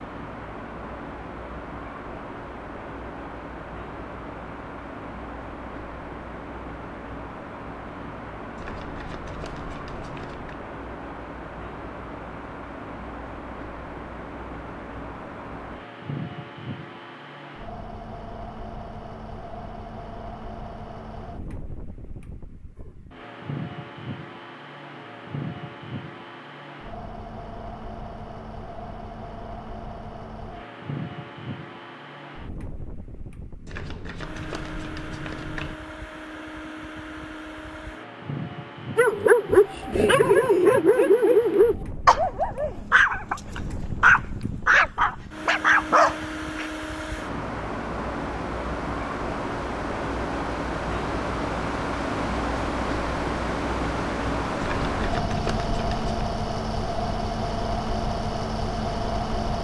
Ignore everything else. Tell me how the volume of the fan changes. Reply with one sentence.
The volume of the fan goes up.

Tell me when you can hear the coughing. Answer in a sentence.
The coughing can't be heard in this clip.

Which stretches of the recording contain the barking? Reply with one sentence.
The barking can be heard from 39.0 to 46.7 s.